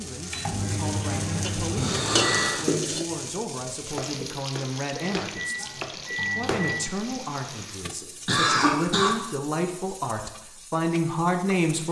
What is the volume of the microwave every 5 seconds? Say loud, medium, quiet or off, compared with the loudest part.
loud, loud, off.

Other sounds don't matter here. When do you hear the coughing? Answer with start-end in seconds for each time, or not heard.
1.8-2.8, 7.1-9.1.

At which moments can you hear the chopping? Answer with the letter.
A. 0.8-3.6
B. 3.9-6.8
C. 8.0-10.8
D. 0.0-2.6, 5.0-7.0
B.